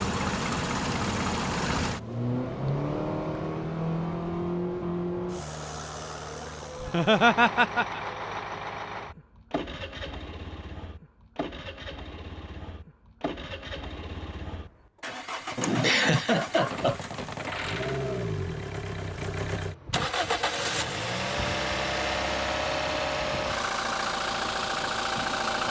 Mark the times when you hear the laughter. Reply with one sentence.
You can hear the laughter from 6.8 to 8.0 s and from 15.6 to 17.1 s.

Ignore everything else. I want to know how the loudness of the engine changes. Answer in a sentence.
The loudness of the engine goes down, then up.